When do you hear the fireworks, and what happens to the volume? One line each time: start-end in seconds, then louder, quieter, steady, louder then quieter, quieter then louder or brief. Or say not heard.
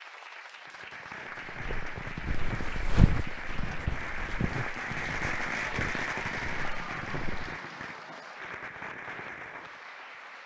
0.6-9.8 louder then quieter.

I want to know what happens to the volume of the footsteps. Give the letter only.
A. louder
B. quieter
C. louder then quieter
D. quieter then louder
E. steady
C.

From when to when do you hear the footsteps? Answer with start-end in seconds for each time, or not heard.
1.4-7.6.